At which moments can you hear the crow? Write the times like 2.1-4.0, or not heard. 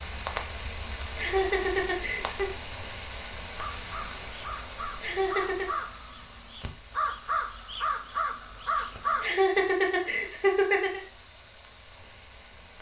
3.5-9.3.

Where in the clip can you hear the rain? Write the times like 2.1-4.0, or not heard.
0.0-12.7.